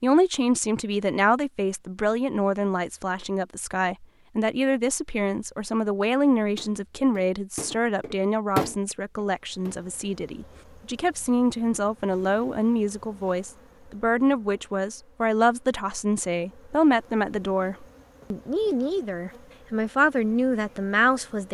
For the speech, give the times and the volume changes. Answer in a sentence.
The speech can be heard from 0.0 to 21.4 s, at a steady volume.